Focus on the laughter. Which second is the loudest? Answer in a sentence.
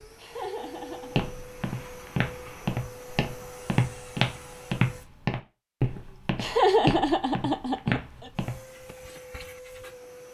The volume of the laughter peaks at 7 seconds.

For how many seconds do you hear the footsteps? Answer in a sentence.
The footsteps can be heard for 8 seconds in total.